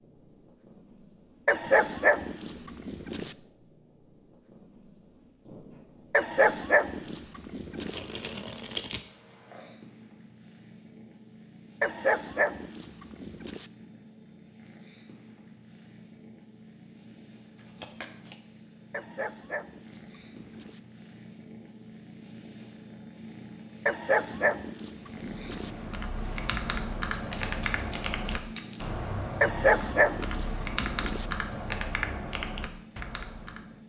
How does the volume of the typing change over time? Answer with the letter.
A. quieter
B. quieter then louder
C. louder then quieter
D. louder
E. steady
E.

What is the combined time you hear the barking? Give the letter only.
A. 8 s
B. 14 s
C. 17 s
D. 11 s
D.